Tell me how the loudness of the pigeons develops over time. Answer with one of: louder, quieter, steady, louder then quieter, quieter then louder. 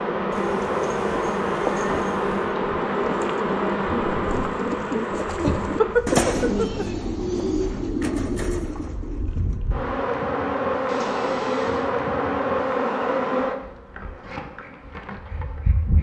louder then quieter.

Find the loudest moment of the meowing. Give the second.
6 s.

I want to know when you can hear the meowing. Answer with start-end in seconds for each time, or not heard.
0.3-2.4, 5.4-7.0, 10.8-11.9.